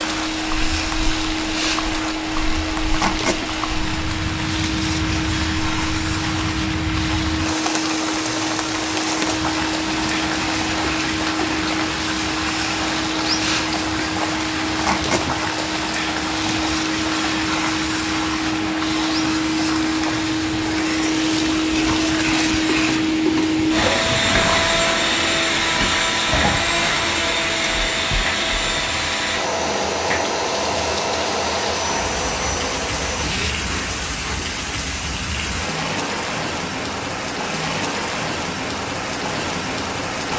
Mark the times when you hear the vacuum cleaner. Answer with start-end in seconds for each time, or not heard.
0.0-33.5.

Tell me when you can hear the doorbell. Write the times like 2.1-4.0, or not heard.
not heard.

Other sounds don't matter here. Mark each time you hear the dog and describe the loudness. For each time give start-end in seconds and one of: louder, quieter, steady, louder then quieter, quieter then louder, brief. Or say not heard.
not heard.